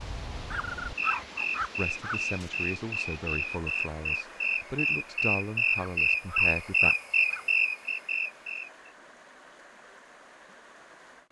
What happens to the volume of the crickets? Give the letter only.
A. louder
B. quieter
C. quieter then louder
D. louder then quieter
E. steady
A.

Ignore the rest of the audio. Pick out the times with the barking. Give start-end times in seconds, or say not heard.
0.5-2.5, 5.8-7.5.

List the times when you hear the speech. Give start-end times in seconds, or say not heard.
1.8-7.0.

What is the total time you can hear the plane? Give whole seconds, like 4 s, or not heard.
not heard.